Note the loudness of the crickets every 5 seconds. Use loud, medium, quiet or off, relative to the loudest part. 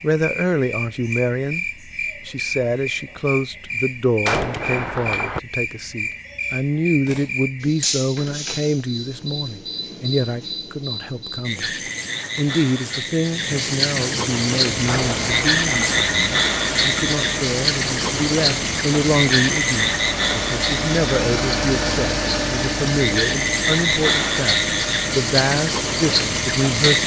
medium, medium, medium, loud, loud, loud.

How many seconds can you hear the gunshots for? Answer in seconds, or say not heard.
2 s.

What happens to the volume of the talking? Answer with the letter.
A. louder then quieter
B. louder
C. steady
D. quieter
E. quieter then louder
C.